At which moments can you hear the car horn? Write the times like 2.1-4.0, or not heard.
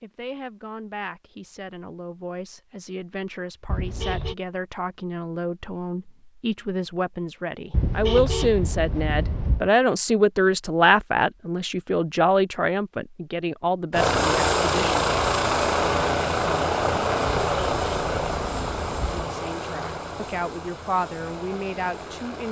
3.6-4.3, 7.7-9.7, 17.2-19.2.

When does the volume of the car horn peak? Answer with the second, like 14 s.
8 s.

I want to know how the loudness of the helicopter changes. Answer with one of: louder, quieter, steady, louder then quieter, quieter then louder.
quieter.